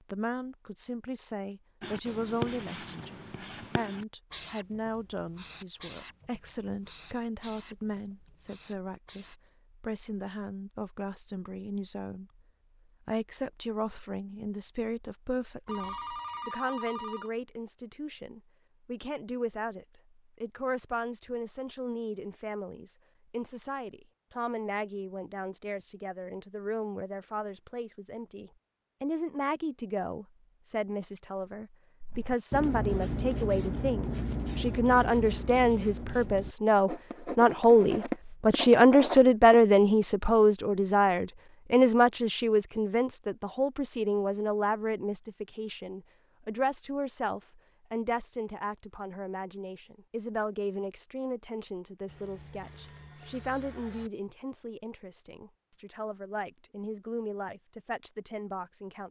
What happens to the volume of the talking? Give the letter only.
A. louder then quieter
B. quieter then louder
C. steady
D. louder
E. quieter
A.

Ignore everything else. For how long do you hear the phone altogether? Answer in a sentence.
You can hear the phone for 4 seconds altogether.